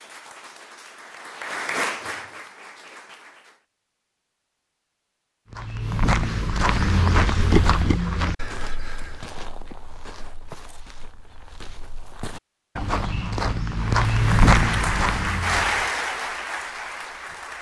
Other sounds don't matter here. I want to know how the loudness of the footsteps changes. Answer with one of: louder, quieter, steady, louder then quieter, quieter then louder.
quieter then louder.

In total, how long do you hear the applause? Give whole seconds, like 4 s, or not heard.
7 s.